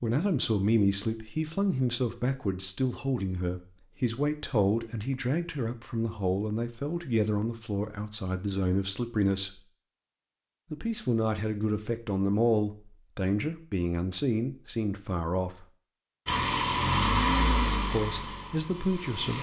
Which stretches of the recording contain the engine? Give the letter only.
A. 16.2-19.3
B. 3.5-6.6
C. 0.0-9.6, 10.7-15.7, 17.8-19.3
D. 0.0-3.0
A.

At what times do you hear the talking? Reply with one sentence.
You can hear the talking from 0.0 to 9.6 s, from 10.7 to 15.7 s and from 17.8 to 19.3 s.